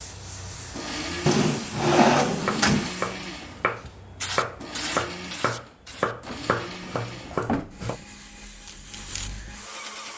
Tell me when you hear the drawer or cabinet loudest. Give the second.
2 s.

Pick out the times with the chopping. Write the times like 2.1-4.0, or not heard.
2.4-8.0.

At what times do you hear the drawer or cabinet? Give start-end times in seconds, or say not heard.
1.2-2.9, 6.2-8.1.